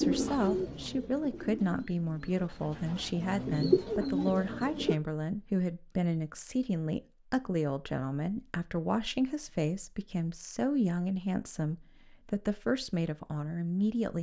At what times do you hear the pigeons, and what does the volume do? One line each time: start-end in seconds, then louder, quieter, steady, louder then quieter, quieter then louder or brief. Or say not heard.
0.0-5.0 quieter then louder.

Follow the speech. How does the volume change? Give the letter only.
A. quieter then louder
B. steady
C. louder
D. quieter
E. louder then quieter
B.